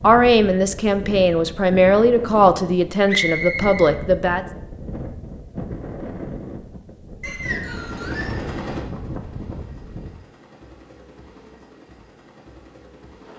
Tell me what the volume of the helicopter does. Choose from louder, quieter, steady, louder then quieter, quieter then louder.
quieter.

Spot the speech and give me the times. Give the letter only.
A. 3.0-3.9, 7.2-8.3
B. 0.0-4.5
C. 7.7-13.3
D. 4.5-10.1
B.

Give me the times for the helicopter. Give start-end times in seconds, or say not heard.
7.7-13.3.